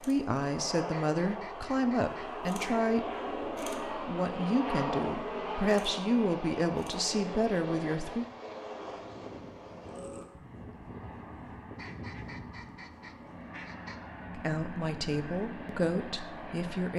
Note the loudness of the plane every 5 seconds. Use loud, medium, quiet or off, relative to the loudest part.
loud, loud, medium, medium.